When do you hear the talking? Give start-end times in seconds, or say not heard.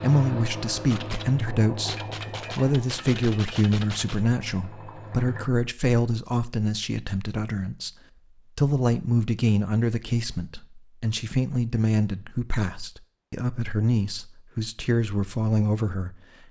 0.0-7.9, 8.6-16.4.